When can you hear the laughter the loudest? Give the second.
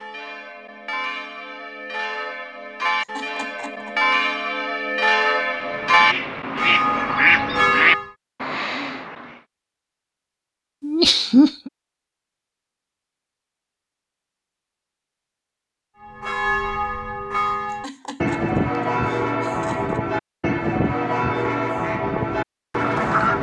11 s.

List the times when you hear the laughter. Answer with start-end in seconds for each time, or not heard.
3.0-4.1, 10.8-11.7, 17.7-20.0.